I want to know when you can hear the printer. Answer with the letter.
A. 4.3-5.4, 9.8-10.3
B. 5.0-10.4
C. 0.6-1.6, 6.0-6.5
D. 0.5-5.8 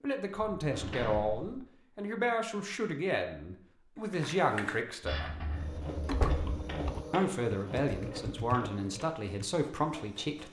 B.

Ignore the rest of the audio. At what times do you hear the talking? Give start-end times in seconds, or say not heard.
0.0-5.3, 7.1-10.4.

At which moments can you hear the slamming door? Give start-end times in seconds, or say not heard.
0.6-1.6, 6.0-6.5.